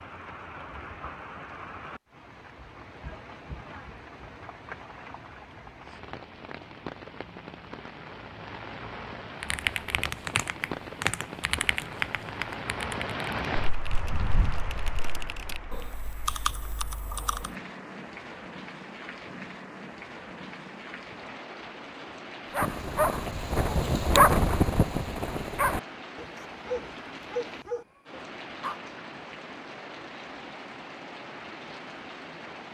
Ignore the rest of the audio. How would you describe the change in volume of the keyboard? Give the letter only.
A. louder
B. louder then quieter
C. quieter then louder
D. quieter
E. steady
C.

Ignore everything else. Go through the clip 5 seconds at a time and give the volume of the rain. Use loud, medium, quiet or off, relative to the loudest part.
medium, medium, loud, medium, medium, medium, medium.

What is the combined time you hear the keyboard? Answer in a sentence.
You can hear the keyboard for 8 seconds altogether.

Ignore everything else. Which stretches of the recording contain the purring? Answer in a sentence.
You can't hear the purring here.